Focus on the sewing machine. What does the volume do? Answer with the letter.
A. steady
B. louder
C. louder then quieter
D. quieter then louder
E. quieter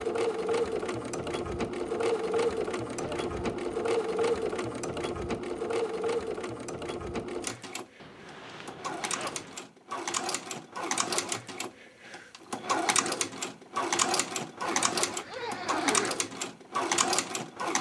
D.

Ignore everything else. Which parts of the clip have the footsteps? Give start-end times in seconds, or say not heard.
not heard.